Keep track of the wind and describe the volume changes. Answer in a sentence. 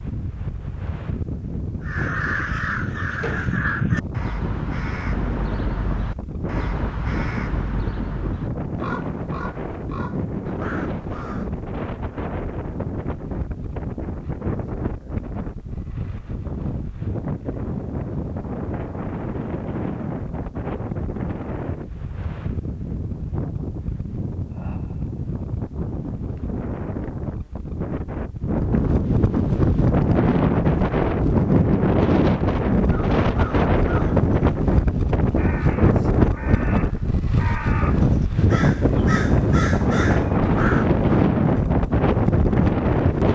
The volume of the wind goes up.